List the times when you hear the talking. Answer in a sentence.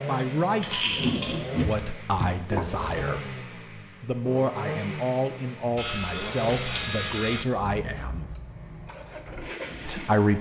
The talking can be heard from 0.0 to 3.3 s, from 4.0 to 8.3 s and from 9.8 to 10.3 s.